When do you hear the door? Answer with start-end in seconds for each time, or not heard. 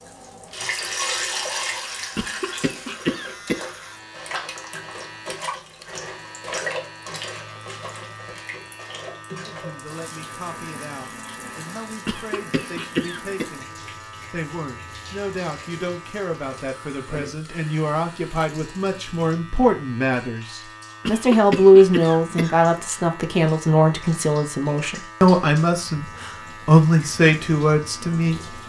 not heard.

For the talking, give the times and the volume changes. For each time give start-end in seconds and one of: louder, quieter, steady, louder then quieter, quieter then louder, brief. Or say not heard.
9.4-28.4 louder.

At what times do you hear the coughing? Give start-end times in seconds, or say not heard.
2.1-3.7, 12.1-13.4, 21.1-22.6.